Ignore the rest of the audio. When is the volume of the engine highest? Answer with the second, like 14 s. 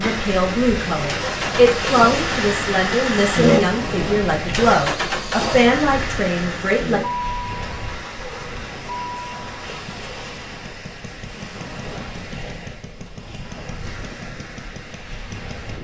3 s.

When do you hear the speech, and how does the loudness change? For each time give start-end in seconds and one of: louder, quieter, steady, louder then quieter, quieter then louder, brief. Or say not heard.
0.0-7.0 steady.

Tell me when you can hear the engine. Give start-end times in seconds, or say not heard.
0.0-15.6.